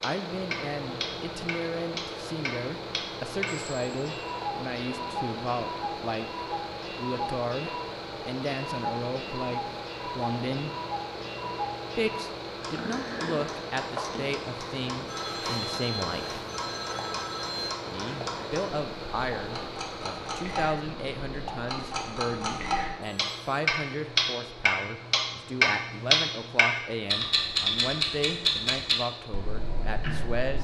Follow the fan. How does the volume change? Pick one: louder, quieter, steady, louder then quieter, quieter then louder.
quieter.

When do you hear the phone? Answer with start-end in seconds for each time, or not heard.
3.5-4.5, 15.1-17.8, 23.0-23.5.